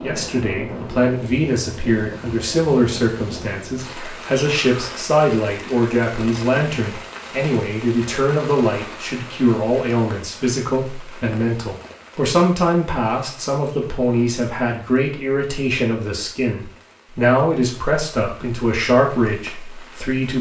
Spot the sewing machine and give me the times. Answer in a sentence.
You can't hear the sewing machine here.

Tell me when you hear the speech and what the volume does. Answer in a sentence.
The speech can be heard from 0.0 to 20.3 s, at a steady volume.